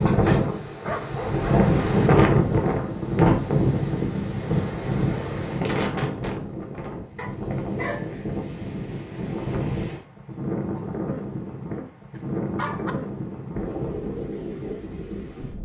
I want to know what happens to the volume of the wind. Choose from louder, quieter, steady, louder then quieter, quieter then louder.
quieter.